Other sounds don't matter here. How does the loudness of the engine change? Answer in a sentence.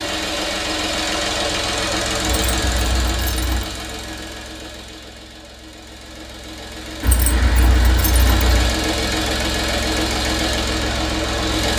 The loudness of the engine goes down, then up.